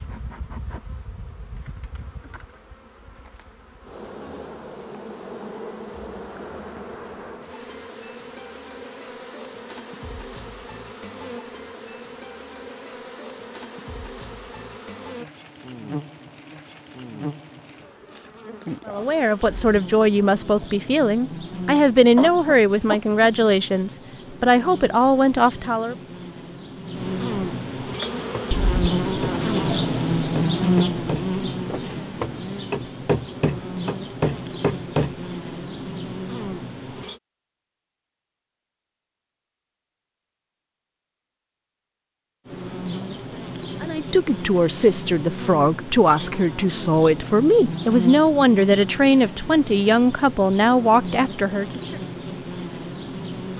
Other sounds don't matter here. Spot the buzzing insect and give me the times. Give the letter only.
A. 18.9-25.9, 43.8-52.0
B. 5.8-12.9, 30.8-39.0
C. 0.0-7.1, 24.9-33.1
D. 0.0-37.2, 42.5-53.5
D.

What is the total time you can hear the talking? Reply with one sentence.
You can hear the talking for 15 seconds altogether.